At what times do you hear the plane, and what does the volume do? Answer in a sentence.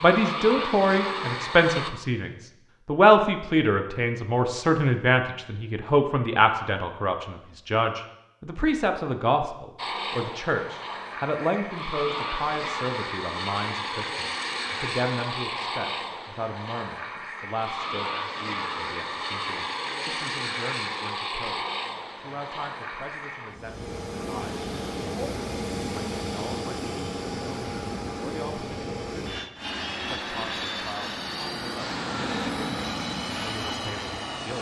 The plane can be heard briefly from 0.0 to 1.9 s; and from 9.8 to 34.5 s, at a steady volume.